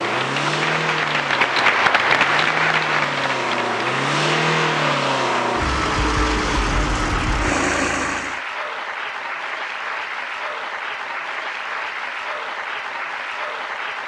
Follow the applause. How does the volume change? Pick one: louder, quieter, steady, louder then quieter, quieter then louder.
quieter.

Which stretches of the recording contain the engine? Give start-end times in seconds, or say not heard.
0.0-8.4.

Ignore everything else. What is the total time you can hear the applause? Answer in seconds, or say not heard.
14 s.